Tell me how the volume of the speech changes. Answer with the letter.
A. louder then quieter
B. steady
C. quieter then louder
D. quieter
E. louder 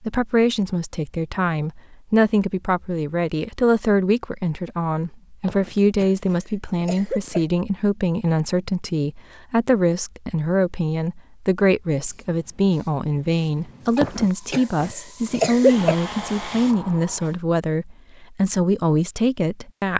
B.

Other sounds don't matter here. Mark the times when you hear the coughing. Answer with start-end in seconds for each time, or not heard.
5.4-7.5, 13.9-15.9.